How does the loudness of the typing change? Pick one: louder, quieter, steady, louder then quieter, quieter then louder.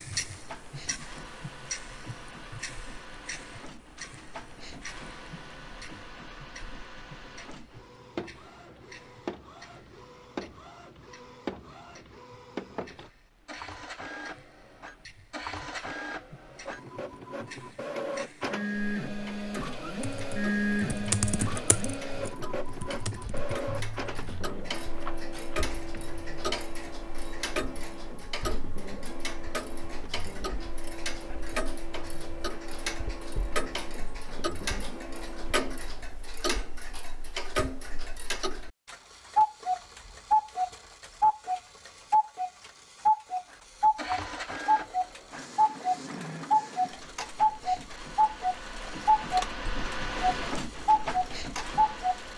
quieter.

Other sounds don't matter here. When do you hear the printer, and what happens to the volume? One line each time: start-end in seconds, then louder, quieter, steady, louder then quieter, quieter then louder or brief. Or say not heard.
0.0-36.1 louder then quieter
43.5-52.3 quieter then louder.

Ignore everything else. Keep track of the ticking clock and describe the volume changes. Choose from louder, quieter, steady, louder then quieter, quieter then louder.
quieter then louder.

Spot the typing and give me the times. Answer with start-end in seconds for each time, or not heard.
20.0-26.3.